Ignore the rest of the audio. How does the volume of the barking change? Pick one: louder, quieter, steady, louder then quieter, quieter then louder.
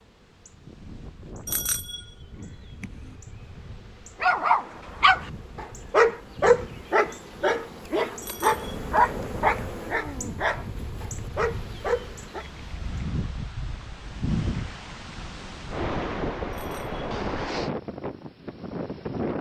quieter.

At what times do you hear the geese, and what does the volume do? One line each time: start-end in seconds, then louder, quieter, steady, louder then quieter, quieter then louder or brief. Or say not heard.
not heard.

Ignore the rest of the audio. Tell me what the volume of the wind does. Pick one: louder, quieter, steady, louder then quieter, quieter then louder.
louder.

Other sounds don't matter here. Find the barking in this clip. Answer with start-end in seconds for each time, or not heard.
4.2-12.4.